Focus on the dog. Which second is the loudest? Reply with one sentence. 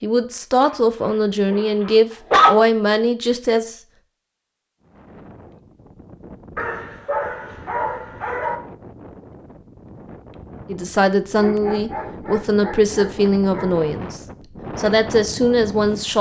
The volume of the dog peaks at 2 seconds.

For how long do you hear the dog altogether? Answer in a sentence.
The dog can be heard for 6 seconds in total.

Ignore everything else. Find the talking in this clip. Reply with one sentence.
The talking can be heard from 0.0 to 3.8 s and from 10.7 to 16.1 s.